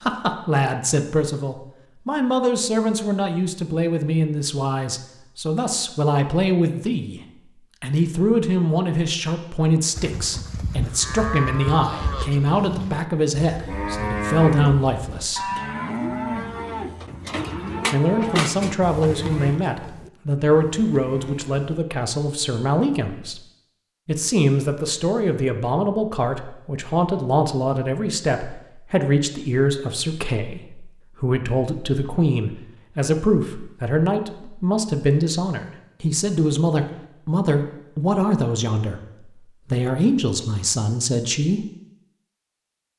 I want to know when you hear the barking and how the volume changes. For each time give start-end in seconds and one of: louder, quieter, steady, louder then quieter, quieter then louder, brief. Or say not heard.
not heard.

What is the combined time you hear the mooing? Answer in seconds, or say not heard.
12 s.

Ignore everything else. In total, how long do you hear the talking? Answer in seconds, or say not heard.
37 s.